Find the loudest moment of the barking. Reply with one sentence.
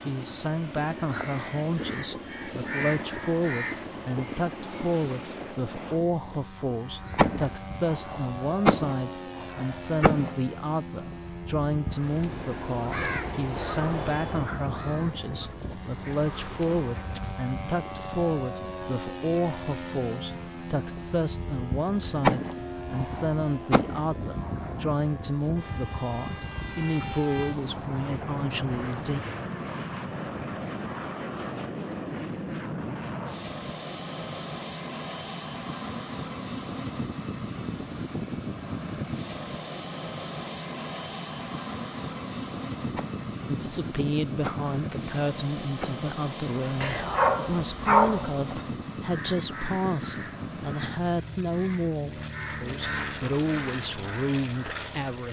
The volume of the barking peaks at 48 seconds.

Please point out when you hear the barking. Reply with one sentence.
You can hear the barking from 15.4 to 17.3 s and from 46.8 to 48.6 s.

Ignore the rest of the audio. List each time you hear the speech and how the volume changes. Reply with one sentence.
The speech can be heard from 0.1 to 29.2 s, at a steady volume; and from 43.5 to 55.2 s, at a steady volume.